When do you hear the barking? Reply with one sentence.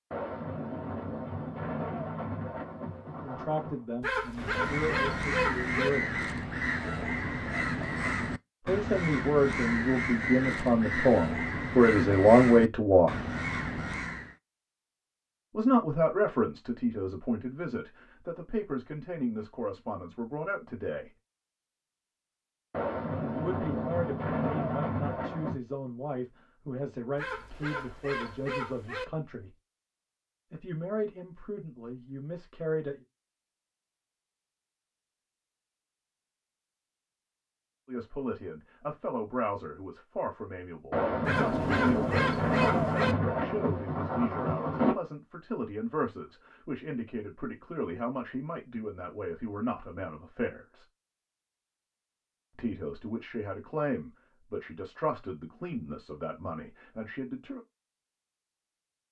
You can hear the barking from 4.0 to 5.9 s, from 27.1 to 29.1 s and from 41.2 to 43.1 s.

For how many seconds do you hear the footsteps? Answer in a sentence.
The footsteps can't be heard in this clip.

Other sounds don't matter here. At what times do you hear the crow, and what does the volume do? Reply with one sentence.
You can hear the crow from 4.3 to 14.3 s, at a steady volume.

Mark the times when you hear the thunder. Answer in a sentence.
The thunder can be heard from 0.1 to 3.8 s, from 22.7 to 25.6 s and from 40.9 to 45.0 s.